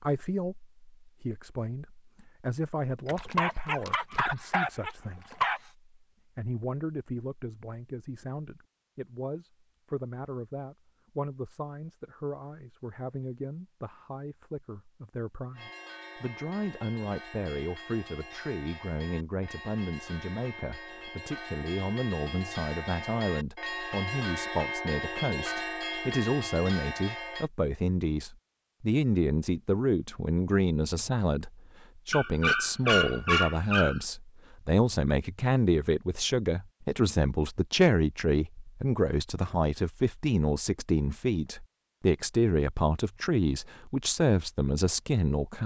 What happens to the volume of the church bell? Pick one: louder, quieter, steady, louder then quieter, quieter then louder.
louder.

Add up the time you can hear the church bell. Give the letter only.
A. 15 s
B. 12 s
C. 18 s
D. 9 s
B.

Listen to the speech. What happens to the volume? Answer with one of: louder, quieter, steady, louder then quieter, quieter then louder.
louder.